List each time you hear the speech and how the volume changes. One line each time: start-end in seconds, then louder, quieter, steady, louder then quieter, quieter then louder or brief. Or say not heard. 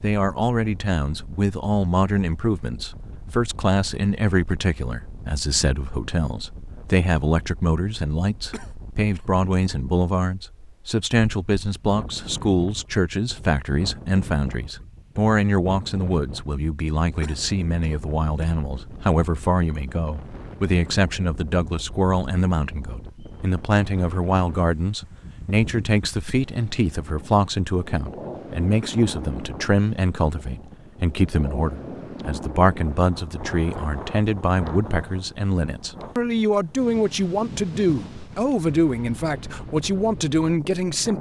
0.0-41.1 steady.